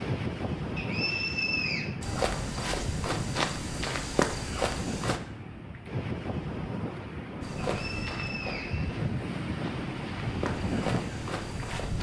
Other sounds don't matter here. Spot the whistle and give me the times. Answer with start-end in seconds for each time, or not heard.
0.8-1.9, 7.8-9.1.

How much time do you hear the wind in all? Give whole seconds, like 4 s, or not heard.
12 s.